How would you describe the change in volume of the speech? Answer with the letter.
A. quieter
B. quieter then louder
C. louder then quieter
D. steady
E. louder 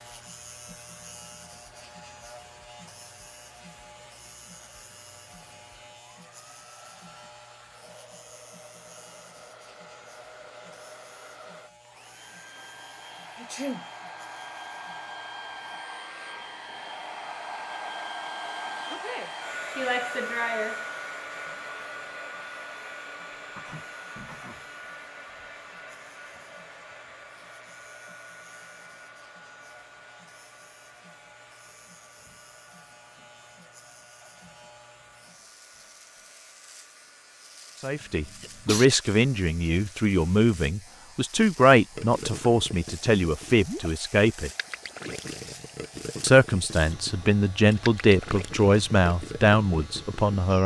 D.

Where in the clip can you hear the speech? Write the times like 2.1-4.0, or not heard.
37.8-44.5, 46.2-50.6.